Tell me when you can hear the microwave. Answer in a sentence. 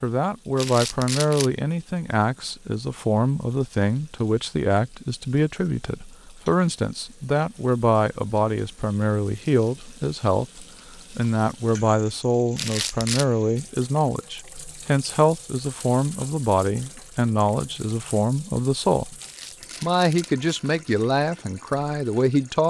The microwave can't be heard in this clip.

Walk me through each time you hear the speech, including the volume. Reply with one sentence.
The speech can be heard from 0.0 to 19.1 s, at a steady volume; and briefly from 19.8 to 22.6 s.